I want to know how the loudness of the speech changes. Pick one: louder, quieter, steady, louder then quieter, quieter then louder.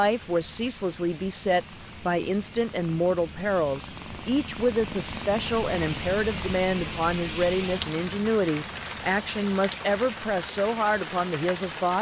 steady.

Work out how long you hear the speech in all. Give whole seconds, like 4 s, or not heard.
12 s.